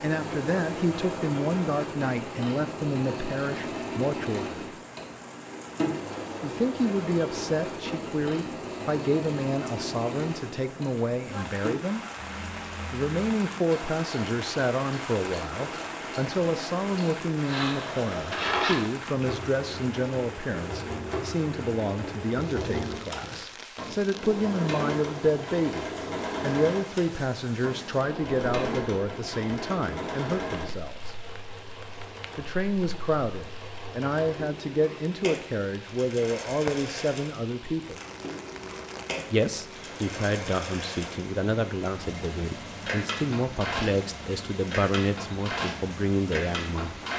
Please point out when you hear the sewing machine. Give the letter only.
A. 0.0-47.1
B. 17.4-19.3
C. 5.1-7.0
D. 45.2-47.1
A.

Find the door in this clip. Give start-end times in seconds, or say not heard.
not heard.